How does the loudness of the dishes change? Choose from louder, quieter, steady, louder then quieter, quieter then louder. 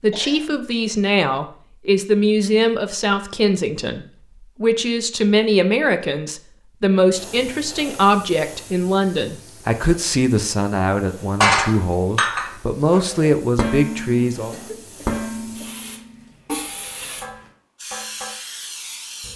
quieter.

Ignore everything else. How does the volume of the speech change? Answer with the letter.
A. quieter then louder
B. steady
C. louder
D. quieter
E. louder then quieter
B.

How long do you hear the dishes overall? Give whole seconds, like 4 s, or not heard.
7 s.